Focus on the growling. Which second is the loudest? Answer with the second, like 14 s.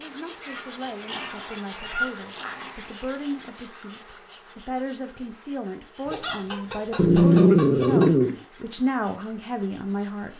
7 s.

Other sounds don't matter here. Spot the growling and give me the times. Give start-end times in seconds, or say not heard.
1.1-3.1, 7.0-8.3.